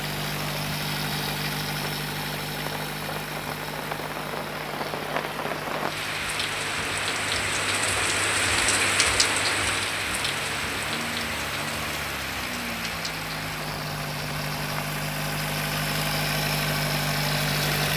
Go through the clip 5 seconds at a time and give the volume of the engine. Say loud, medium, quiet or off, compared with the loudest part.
medium, quiet, medium, loud.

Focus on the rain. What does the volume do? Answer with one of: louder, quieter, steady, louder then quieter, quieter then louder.
louder then quieter.